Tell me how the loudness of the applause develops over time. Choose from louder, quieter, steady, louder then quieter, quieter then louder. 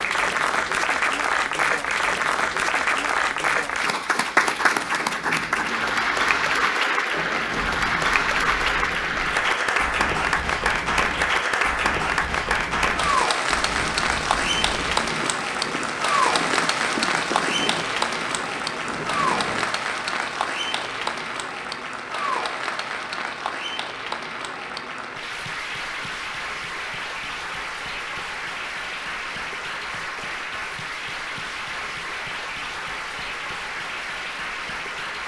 quieter.